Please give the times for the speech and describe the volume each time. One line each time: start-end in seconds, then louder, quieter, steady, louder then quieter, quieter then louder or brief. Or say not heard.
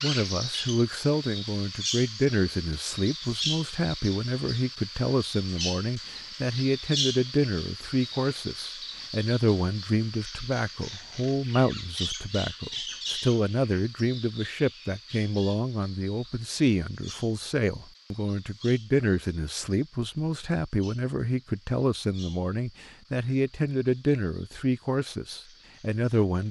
0.0-26.4 steady.